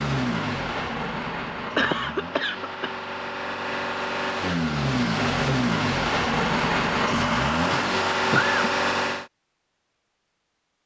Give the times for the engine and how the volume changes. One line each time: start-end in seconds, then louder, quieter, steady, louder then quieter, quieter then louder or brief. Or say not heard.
0.0-9.3 louder.